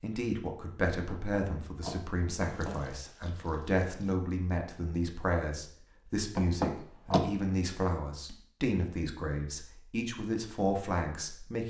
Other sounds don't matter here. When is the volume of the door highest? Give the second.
7 s.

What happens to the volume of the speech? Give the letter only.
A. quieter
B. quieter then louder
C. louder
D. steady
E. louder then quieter
D.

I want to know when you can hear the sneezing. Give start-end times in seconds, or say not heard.
not heard.